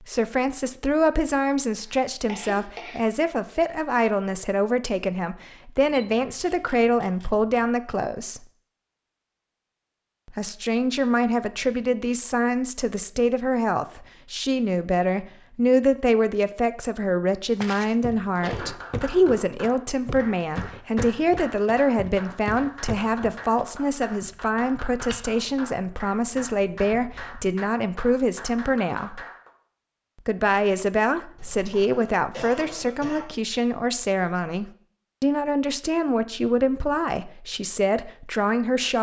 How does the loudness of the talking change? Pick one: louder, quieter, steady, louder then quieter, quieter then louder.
steady.